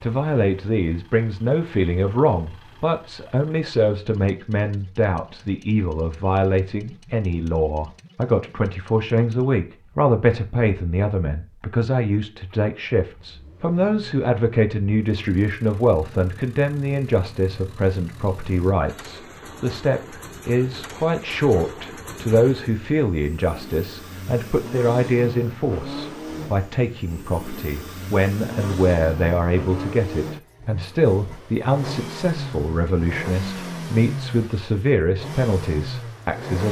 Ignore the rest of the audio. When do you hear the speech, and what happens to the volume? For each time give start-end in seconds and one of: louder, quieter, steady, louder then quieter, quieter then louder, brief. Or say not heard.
0.0-36.6 steady.